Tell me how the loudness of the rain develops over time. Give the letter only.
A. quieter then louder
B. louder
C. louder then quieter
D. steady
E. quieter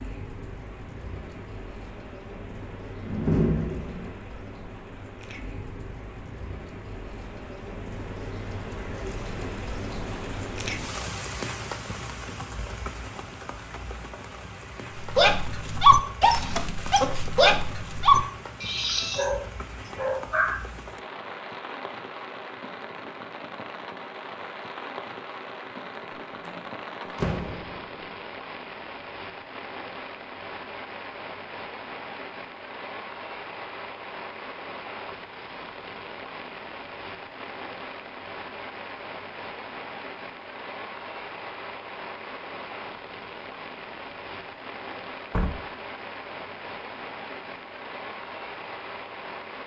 D.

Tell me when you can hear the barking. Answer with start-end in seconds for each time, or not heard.
14.9-20.6.